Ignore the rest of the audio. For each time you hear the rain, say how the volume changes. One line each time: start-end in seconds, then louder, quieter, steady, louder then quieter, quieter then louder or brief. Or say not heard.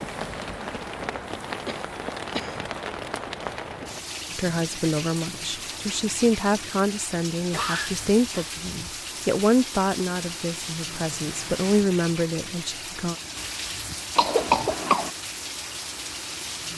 0.0-16.7 steady.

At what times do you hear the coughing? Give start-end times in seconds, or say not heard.
1.6-3.2, 7.5-8.6, 14.2-15.1.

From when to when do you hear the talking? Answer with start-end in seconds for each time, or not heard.
4.3-13.2.